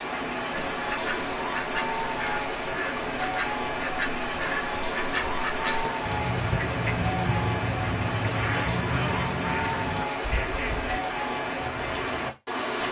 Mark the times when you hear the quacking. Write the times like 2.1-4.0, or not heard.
0.8-10.9.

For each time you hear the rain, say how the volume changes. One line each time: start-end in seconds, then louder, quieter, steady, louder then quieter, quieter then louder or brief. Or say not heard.
0.0-12.8 steady.